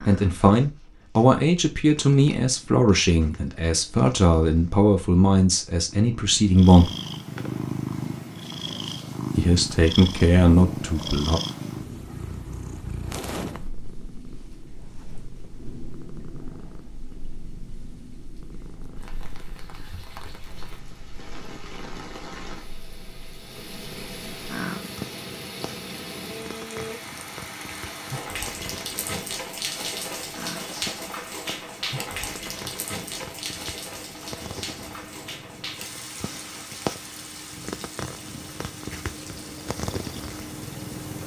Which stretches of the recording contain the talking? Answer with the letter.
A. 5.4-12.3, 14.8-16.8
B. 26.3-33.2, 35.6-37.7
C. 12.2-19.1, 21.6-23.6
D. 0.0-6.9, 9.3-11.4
D.